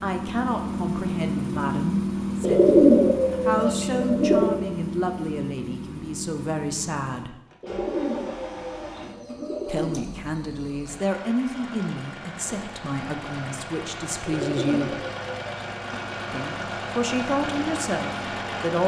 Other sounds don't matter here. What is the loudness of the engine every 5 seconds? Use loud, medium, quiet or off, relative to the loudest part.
loud, medium, medium, loud.